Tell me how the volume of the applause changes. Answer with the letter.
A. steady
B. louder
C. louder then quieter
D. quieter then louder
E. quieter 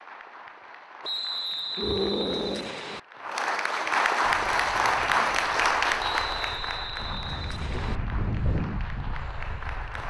C.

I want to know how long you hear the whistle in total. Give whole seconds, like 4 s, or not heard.
4 s.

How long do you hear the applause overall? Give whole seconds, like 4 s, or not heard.
10 s.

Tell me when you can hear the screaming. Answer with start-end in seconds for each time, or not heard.
1.8-2.8.